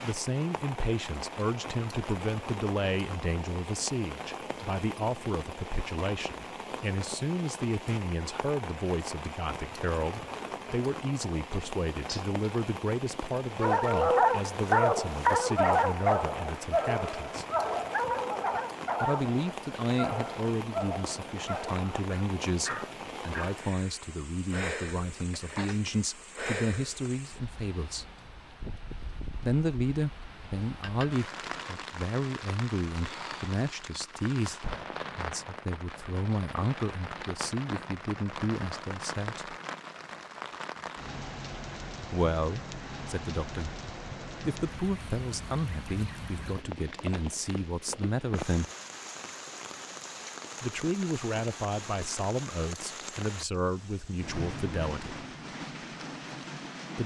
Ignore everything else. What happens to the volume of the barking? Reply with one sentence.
The loudness of the barking goes down.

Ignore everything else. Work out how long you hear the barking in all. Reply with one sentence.
You can hear the barking for 10 seconds altogether.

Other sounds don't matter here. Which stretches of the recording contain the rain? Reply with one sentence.
The rain can be heard from 0.0 to 57.0 s.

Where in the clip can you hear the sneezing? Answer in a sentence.
The sneezing can be heard from 11.5 to 12.3 s.